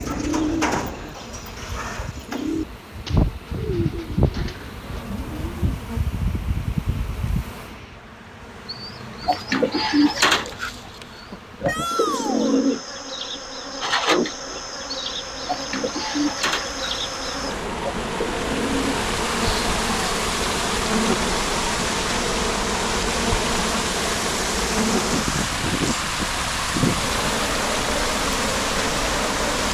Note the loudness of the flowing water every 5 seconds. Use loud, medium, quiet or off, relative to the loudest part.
quiet, quiet, quiet, medium, loud, loud.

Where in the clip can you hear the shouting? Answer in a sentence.
You can hear the shouting from 11.7 to 12.6 s.